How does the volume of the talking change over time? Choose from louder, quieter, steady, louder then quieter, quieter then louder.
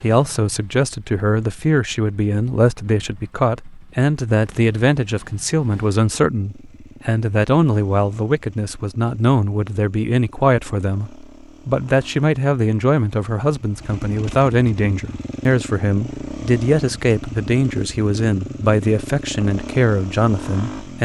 steady.